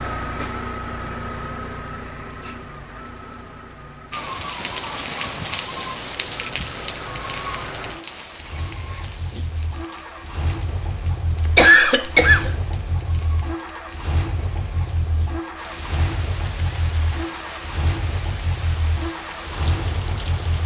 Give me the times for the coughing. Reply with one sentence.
You can hear the coughing from 11.4 to 12.5 s.